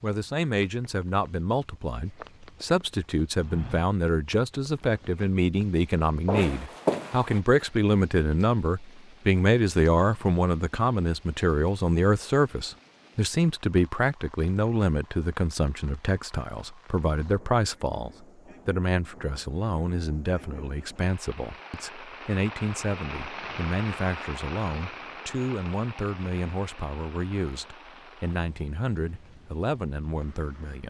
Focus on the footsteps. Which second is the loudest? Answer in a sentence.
The loudest moment of the footsteps is at 7 seconds.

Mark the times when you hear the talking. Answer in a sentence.
You can hear the talking from 0.0 to 30.8 s.